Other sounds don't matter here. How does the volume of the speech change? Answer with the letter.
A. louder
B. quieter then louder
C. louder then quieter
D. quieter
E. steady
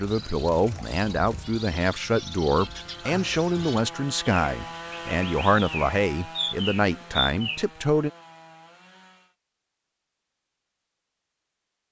E.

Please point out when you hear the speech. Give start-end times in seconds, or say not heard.
0.0-8.1.